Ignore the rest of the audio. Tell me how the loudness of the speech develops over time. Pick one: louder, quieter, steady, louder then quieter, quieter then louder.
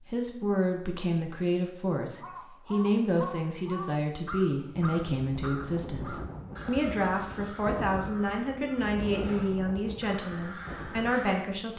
steady.